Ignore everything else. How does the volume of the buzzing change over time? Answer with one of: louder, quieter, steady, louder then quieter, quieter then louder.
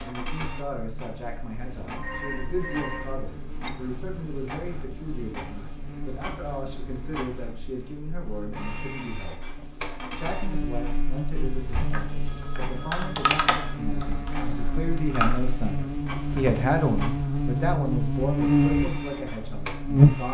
louder.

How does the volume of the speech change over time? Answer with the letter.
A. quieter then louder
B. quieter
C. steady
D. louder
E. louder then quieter
D.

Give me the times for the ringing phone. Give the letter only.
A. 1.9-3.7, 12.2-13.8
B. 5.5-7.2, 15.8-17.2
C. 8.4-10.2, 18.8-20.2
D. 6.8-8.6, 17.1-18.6
A.